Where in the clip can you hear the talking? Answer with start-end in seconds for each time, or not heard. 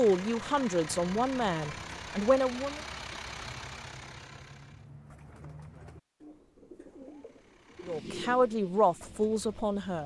0.0-2.8, 7.8-10.0.